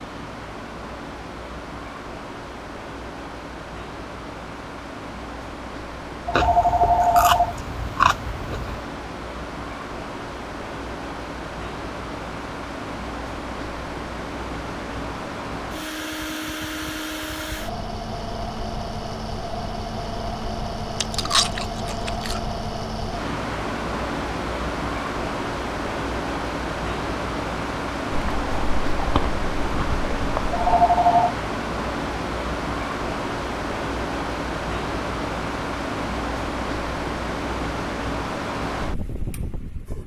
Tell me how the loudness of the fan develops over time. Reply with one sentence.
The loudness of the fan goes up.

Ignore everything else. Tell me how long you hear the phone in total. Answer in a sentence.
The phone can be heard for 2 seconds in total.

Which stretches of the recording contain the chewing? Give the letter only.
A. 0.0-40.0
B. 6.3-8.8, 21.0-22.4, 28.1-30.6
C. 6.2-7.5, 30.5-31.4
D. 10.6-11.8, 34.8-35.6
B.